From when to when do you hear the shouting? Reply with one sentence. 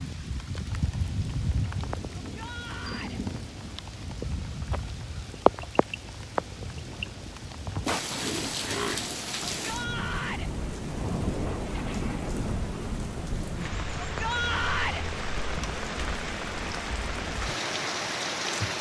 The shouting can be heard from 2.2 to 3.2 s, from 9.6 to 10.5 s and from 14.0 to 15.1 s.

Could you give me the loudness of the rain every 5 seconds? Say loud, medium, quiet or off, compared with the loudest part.
medium, loud, loud, loud.